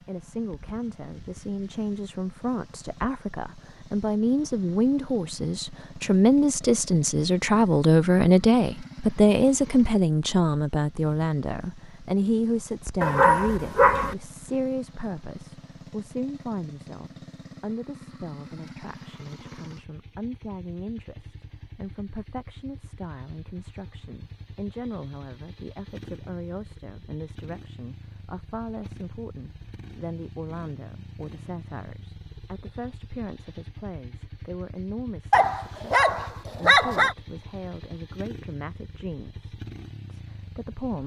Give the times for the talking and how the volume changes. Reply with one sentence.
The talking can be heard from 0.1 to 41.0 s, getting quieter.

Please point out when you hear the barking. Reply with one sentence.
You can hear the barking from 13.0 to 14.2 s and from 35.3 to 37.1 s.